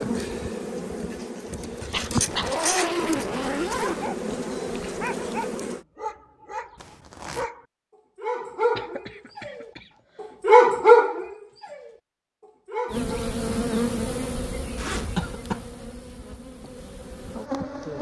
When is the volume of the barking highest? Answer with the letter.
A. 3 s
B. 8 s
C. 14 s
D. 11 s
D.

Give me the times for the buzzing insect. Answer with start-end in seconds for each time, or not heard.
0.0-5.8, 12.9-17.9.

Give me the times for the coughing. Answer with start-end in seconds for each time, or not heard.
1.9-3.0, 8.8-10.2, 15.2-15.7.